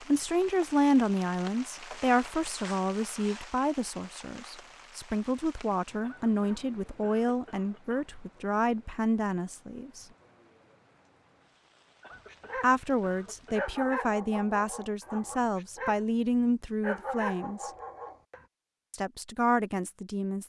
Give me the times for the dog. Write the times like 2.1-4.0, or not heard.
12.1-18.4.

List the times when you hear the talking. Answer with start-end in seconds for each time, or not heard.
0.1-10.1, 12.6-17.7, 18.9-20.4.